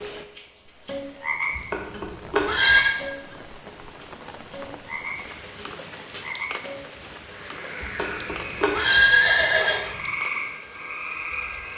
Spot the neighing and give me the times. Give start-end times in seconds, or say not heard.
1.6-3.0, 7.8-10.0.